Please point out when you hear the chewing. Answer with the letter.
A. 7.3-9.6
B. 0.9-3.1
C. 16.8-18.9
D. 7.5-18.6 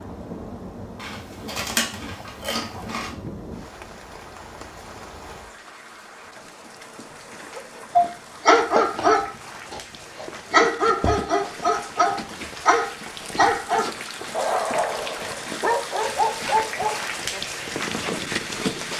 B.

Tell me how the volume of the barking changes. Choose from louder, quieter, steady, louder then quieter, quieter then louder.
quieter.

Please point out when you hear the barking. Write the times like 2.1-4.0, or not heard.
7.5-18.6.